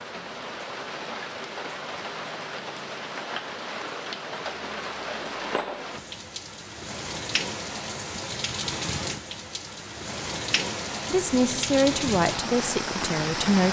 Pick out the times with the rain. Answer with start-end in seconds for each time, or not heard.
0.0-13.6.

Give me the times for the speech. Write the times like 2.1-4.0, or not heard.
11.1-13.6.